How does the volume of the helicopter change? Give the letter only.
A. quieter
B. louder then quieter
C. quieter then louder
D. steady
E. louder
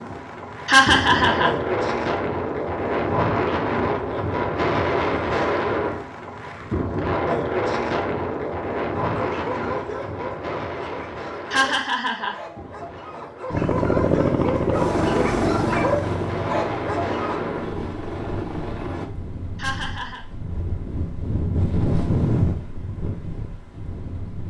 A.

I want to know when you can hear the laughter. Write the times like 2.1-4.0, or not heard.
0.7-1.6, 11.5-12.3, 19.6-20.2.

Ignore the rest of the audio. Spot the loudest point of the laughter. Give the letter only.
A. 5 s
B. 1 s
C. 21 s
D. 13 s
B.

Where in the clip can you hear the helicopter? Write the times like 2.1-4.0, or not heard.
13.5-19.1.